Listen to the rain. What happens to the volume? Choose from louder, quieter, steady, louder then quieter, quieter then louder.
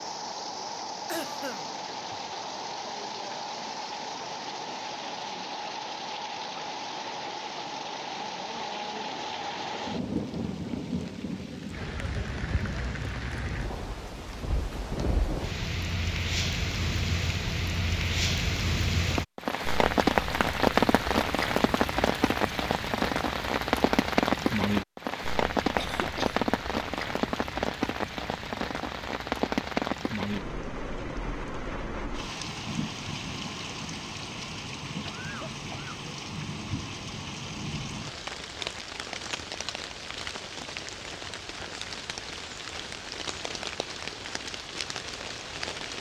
louder then quieter.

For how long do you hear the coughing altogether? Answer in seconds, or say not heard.
3 s.